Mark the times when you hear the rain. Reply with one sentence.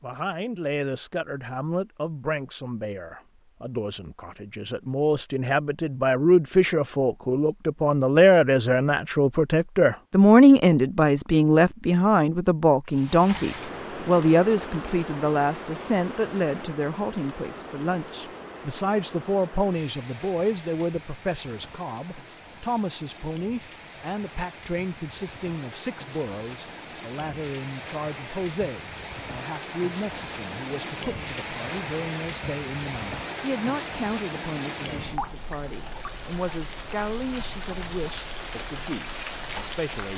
You can hear the rain from 12.8 to 40.1 s.